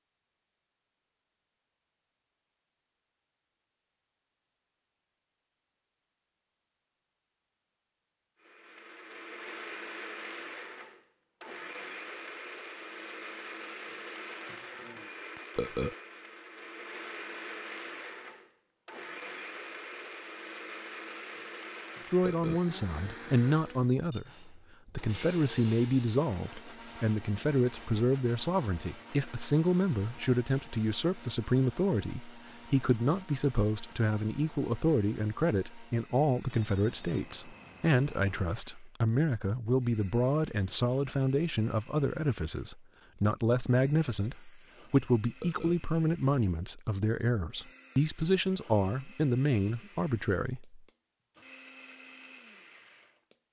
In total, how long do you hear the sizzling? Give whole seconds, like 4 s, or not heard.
not heard.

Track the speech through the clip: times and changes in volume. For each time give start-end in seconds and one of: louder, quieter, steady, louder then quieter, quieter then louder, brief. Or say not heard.
22.1-50.8 steady.